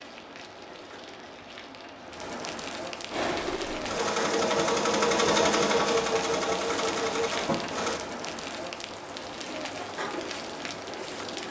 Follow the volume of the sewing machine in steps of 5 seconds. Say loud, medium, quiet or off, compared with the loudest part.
loud, loud, off.